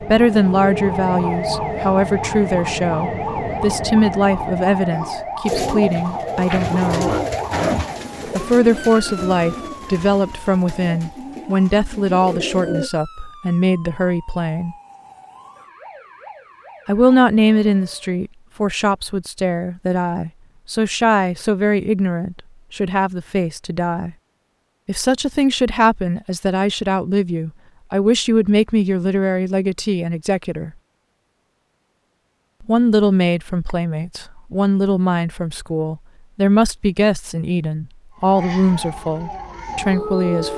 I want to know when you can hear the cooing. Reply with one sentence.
The cooing can be heard from 5.4 to 12.9 s.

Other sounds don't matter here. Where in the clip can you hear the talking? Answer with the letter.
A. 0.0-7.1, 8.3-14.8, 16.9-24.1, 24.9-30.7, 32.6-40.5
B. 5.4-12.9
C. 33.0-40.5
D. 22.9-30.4
A.